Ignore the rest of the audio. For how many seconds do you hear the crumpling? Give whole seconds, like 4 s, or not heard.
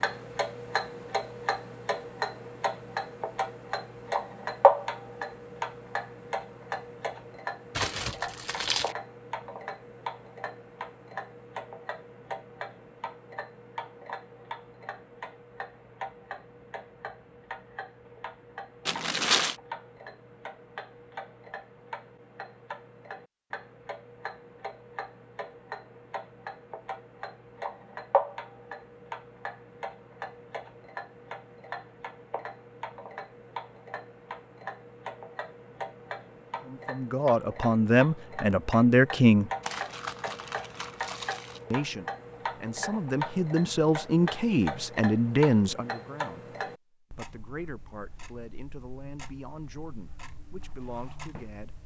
4 s.